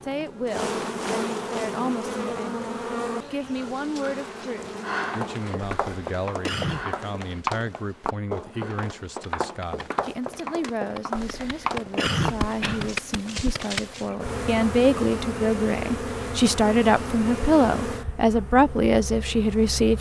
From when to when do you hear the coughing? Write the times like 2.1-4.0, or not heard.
5.6-6.8, 11.2-12.9.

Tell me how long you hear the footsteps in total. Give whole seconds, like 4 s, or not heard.
9 s.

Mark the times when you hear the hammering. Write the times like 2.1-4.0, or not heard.
not heard.